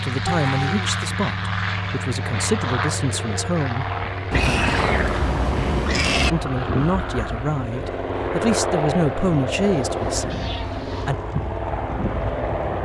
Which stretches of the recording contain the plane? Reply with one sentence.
You can hear the plane from 0.0 to 12.8 s.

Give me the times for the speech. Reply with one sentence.
You can hear the speech from 0.0 to 4.7 s and from 6.3 to 11.2 s.